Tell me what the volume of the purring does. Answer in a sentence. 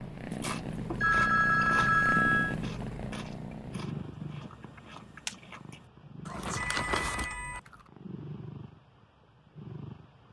The volume of the purring goes down.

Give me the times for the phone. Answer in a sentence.
You can hear the phone from 1.0 to 2.5 s and from 6.5 to 7.6 s.